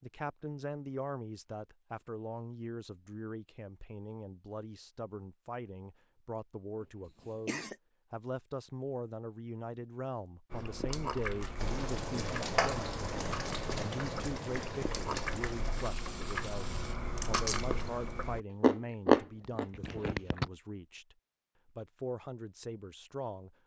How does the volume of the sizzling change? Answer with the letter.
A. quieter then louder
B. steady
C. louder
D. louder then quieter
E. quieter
E.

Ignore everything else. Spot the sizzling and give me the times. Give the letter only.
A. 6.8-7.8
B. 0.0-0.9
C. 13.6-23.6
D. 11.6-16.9
D.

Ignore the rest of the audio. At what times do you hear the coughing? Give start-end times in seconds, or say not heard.
6.8-7.8.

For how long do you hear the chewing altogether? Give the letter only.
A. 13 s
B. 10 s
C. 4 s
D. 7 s
B.